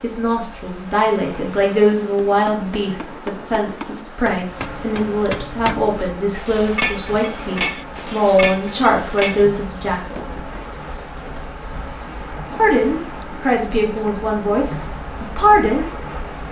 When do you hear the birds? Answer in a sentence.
You can't hear the birds here.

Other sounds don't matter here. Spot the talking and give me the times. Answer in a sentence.
The talking can be heard from 0.0 to 10.2 s and from 12.6 to 16.4 s.